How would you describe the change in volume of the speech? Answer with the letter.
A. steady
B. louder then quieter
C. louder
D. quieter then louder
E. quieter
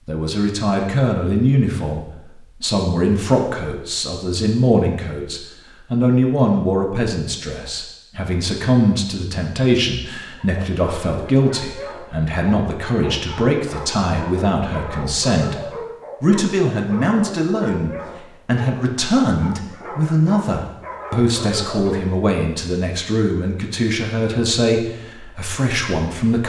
A.